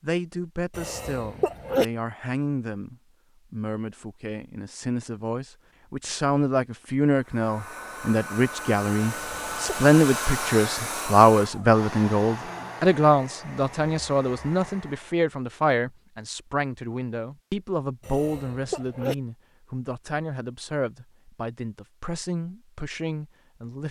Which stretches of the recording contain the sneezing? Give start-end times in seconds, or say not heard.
0.7-1.9, 9.2-9.8, 18.0-19.1.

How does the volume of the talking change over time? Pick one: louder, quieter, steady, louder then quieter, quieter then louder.
louder then quieter.